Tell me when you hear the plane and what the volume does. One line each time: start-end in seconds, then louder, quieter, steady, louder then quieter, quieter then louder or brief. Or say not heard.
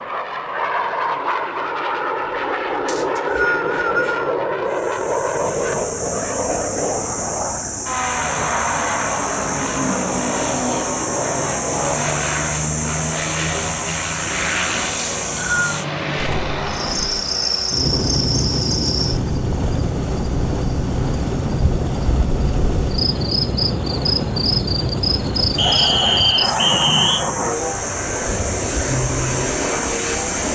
0.0-30.5 steady.